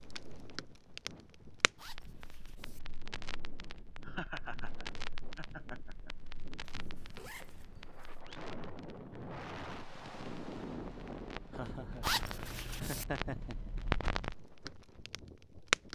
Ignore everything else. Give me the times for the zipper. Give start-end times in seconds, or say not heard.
1.8-2.8, 6.7-8.2, 12.0-13.1.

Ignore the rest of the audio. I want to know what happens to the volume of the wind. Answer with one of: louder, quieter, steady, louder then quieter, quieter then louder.
louder then quieter.